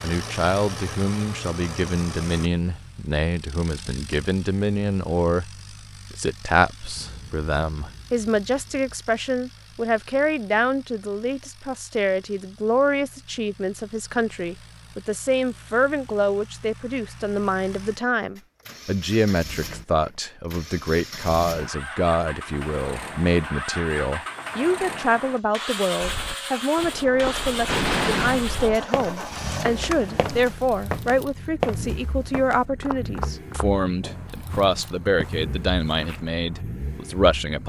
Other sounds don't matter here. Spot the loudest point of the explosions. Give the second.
28 s.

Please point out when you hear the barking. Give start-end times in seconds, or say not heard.
not heard.